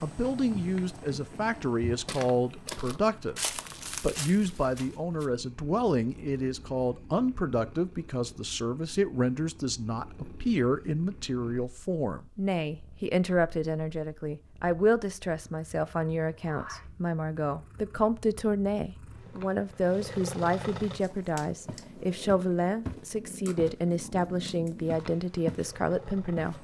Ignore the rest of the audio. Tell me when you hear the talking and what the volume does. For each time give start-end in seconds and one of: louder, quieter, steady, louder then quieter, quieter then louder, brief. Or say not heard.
0.0-26.5 steady.